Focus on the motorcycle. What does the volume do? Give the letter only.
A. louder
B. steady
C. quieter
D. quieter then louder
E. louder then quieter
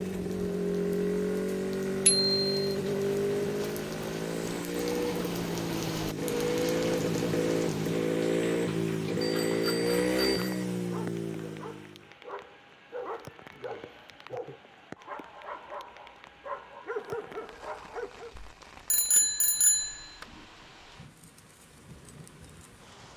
B.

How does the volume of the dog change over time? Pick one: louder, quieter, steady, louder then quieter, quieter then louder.
louder.